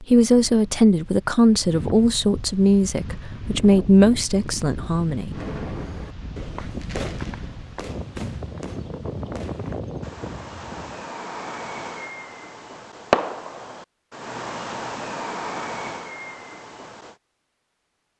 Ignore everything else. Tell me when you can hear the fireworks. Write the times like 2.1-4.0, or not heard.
5.3-17.1.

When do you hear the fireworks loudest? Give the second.
13 s.